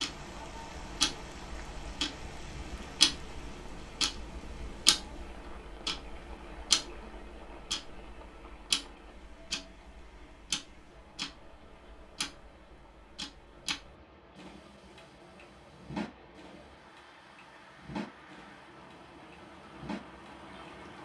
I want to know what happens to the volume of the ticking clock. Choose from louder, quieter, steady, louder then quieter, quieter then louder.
quieter.